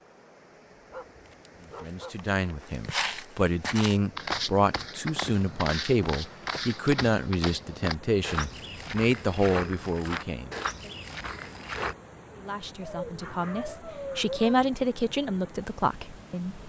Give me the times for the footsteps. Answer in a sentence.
You can hear the footsteps from 2.7 to 11.9 s.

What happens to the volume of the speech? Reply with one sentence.
The loudness of the speech goes down, then up.